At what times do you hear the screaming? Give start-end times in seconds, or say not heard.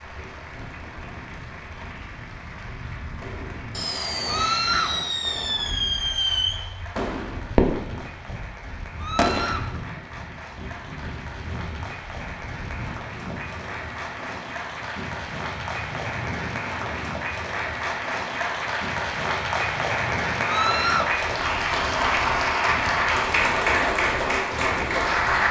4.2-5.0, 8.9-9.7, 20.4-21.1.